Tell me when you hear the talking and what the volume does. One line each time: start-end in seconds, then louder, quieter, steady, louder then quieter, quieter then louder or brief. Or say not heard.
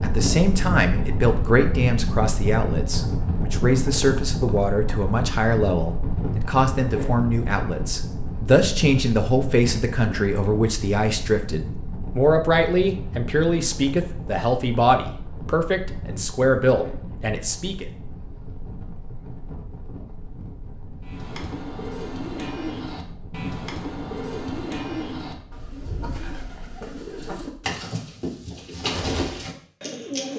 0.0-17.9 steady.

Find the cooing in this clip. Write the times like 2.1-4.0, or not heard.
21.0-30.3.